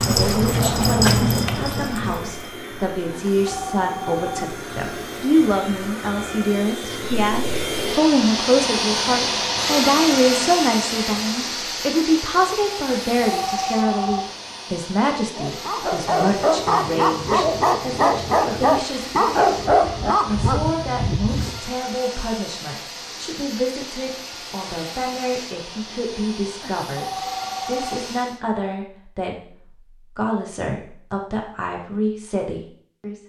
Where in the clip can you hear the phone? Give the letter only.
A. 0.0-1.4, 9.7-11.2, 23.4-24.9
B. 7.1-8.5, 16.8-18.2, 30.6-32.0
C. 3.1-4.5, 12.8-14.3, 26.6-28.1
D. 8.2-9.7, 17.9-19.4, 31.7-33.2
C.